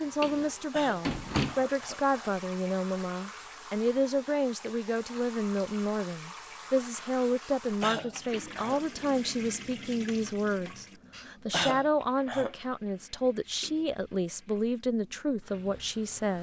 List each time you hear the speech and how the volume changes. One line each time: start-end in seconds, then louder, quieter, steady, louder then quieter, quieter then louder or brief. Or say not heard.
0.0-16.3 steady.